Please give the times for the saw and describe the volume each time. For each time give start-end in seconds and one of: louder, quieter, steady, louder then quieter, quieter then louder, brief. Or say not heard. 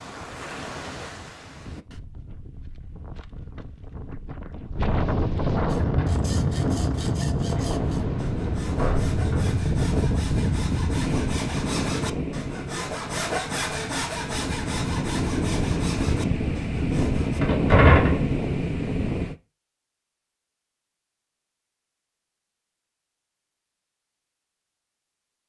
5.7-17.4 louder then quieter.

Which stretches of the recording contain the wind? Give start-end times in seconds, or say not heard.
0.0-19.4.